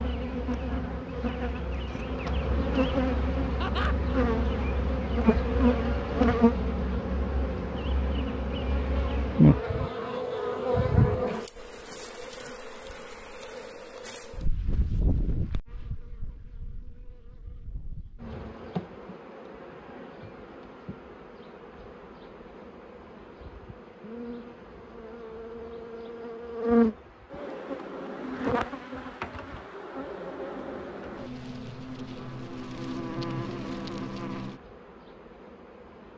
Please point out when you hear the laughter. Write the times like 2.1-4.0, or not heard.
3.6-4.2.